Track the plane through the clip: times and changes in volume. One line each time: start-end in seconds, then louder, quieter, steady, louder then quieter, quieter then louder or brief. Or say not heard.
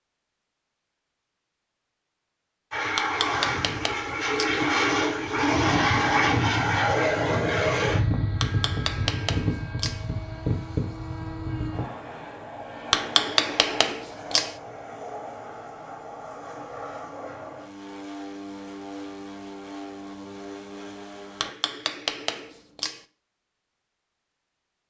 2.7-21.5 quieter.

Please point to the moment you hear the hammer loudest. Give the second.
13 s.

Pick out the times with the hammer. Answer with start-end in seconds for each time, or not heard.
3.0-4.5, 8.4-10.0, 12.9-14.6, 21.4-23.0.